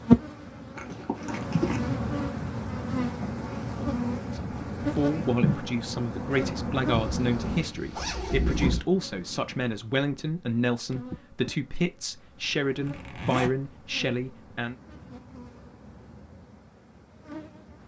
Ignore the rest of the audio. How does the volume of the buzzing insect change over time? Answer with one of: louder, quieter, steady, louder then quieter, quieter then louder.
quieter.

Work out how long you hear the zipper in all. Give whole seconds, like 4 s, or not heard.
4 s.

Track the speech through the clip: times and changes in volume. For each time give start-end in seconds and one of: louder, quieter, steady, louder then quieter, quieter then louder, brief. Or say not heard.
4.3-14.8 steady.